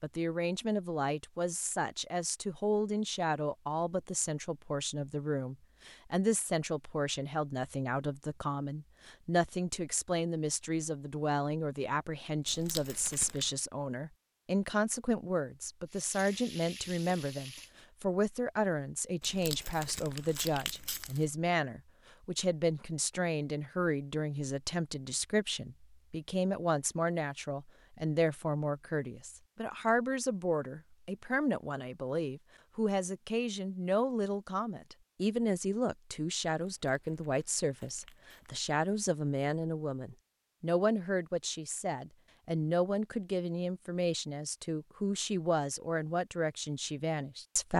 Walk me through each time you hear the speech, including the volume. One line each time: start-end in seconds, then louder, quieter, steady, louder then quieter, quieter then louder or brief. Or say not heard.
0.0-47.7 steady.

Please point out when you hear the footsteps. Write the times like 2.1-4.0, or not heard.
not heard.